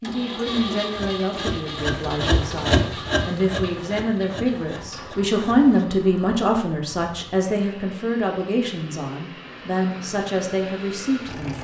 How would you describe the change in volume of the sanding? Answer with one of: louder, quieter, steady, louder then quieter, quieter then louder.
louder then quieter.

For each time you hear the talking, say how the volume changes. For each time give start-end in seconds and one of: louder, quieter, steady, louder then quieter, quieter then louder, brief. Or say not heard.
0.0-11.5 louder then quieter.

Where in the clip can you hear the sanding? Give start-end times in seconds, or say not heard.
0.5-5.9.